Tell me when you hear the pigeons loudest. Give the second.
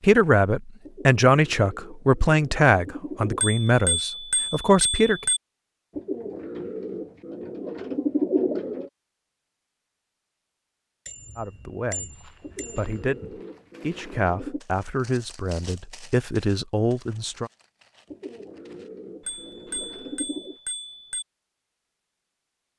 8 s.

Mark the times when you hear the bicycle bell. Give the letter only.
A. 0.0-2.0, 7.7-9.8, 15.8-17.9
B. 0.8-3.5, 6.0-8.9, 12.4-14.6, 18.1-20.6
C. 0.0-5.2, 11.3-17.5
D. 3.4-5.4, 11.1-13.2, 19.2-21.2
D.